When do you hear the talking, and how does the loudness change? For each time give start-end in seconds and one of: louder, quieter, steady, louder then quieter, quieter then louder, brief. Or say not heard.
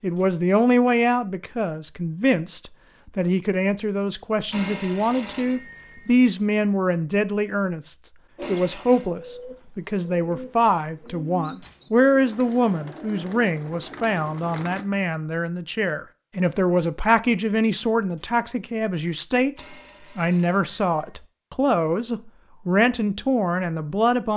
0.0-24.3 steady.